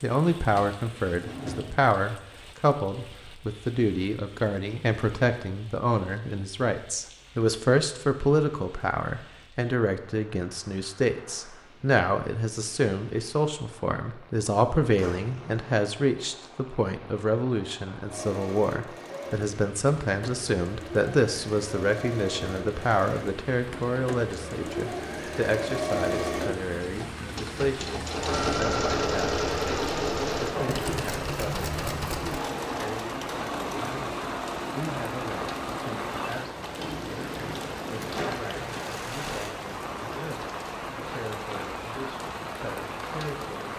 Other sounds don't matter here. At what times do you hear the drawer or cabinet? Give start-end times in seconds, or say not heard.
0.6-1.9, 14.9-15.7, 36.8-38.5.